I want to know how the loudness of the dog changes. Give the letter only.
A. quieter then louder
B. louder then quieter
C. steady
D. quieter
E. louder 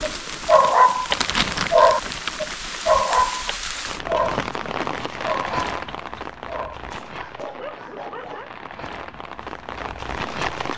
D.